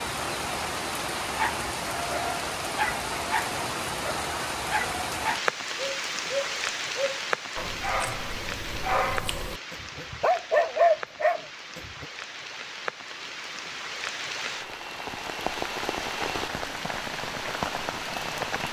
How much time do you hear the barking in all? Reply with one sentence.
You can hear the barking for 11 seconds altogether.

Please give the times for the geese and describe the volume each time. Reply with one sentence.
You can't hear the geese here.